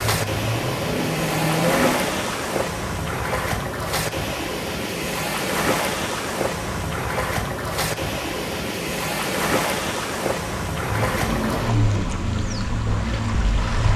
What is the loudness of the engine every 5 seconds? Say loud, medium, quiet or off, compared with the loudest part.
loud, off, loud.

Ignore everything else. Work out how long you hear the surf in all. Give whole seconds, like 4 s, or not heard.
14 s.